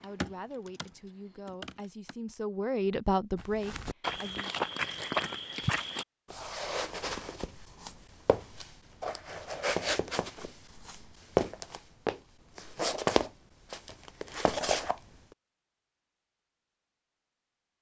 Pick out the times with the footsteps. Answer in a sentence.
The footsteps can be heard from 3.4 to 15.0 s.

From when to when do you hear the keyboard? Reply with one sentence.
The keyboard can be heard from 0.0 to 2.1 s.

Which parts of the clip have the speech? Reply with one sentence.
The speech can be heard from 0.0 to 4.5 s.